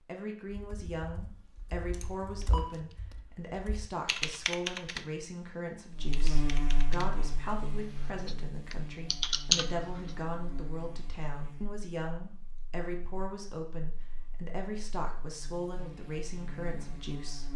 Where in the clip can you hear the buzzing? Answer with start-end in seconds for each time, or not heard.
5.9-17.5.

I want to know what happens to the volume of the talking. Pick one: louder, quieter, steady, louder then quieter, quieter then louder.
steady.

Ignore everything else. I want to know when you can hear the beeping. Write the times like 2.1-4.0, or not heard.
1.9-2.8.